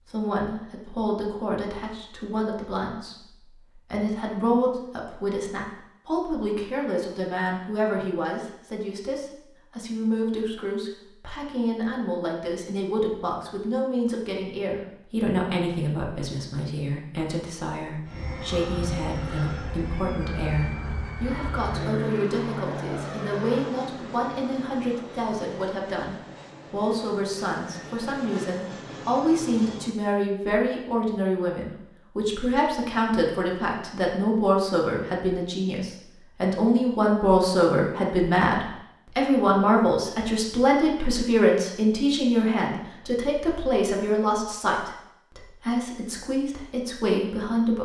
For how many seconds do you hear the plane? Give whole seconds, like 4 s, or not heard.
12 s.